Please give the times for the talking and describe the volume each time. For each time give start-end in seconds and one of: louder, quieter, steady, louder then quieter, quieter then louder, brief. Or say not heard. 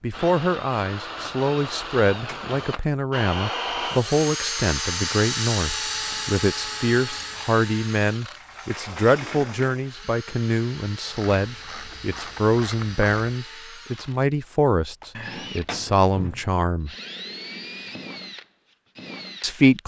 0.0-16.9 steady
19.4-19.8 brief.